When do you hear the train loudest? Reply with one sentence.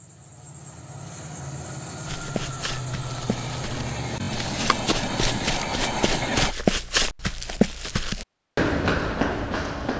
The volume of the train peaks at 6 seconds.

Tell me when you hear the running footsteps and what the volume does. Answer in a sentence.
You can hear the running footsteps from 2.0 to 9.9 s, getting louder.